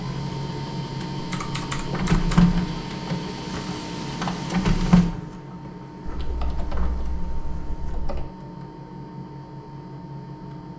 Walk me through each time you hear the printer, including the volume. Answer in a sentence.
You can hear the printer from 0.0 to 10.7 s, getting quieter.